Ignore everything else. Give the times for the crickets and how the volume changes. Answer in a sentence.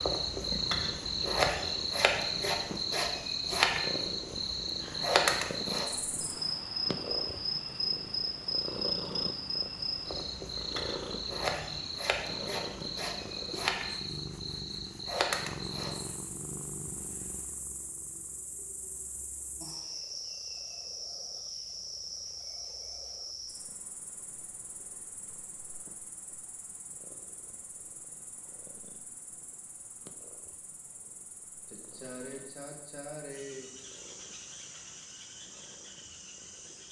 The crickets can be heard from 0.0 to 36.8 s, getting quieter.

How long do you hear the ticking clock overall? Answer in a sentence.
You can't hear the ticking clock here.